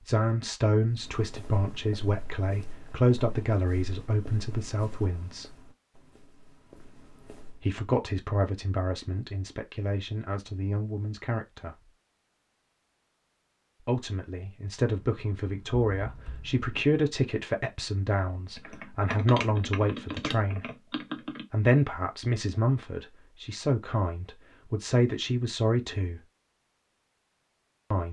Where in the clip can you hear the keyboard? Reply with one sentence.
You can hear the keyboard from 14.8 to 16.6 s and from 18.5 to 21.4 s.